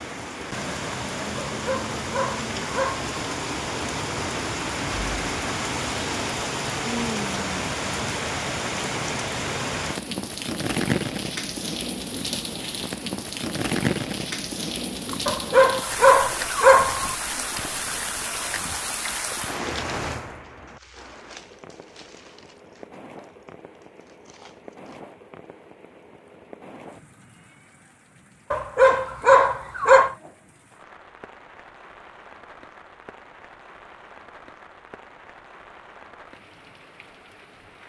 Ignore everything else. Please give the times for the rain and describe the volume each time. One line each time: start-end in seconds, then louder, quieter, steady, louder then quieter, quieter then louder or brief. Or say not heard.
0.0-37.8 quieter.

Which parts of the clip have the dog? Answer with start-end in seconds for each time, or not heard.
1.6-3.1, 15.2-17.1, 28.5-30.1.